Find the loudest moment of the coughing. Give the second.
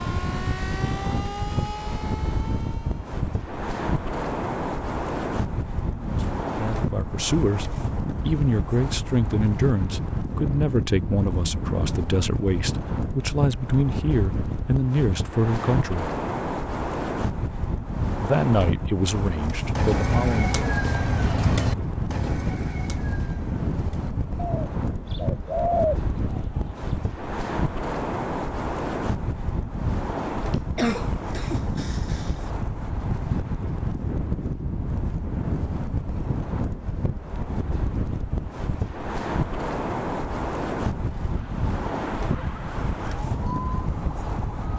31 s.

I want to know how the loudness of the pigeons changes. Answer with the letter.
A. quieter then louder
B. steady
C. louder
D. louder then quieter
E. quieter
A.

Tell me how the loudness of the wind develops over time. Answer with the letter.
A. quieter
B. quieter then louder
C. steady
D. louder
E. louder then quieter
C.